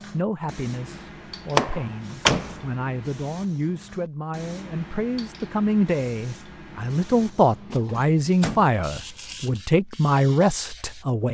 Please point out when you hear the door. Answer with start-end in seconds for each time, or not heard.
1.6-2.7, 7.7-8.7.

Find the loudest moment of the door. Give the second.
2 s.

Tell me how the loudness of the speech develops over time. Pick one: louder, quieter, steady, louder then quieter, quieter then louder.
louder.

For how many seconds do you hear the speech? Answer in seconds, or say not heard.
11 s.